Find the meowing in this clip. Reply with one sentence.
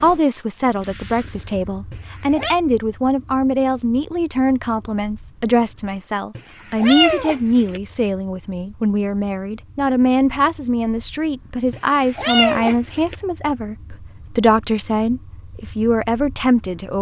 The meowing can be heard from 1.9 to 2.5 s, from 6.3 to 7.8 s and from 11.7 to 13.2 s.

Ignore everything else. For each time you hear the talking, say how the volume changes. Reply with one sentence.
The talking can be heard from 0.0 to 16.9 s, at a steady volume.